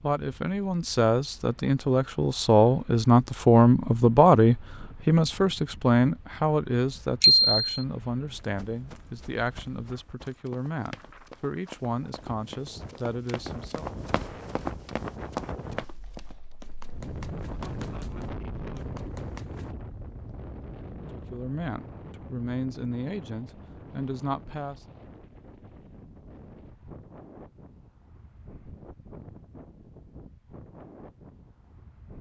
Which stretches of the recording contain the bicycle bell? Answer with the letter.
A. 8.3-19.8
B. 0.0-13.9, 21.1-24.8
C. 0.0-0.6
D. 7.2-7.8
D.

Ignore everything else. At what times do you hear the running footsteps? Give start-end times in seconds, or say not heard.
8.3-19.8.